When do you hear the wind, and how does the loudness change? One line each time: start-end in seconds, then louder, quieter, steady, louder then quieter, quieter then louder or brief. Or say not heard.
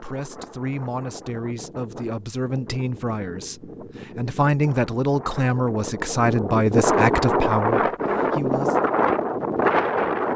0.0-10.3 louder.